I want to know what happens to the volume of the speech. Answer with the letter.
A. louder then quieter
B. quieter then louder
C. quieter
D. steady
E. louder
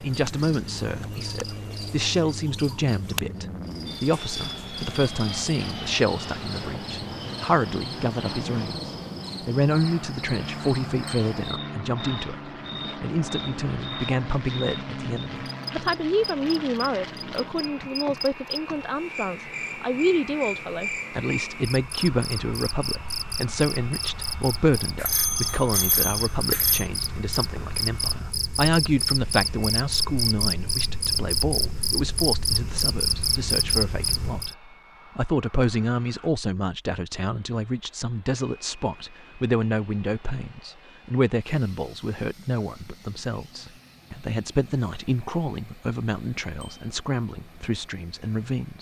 D.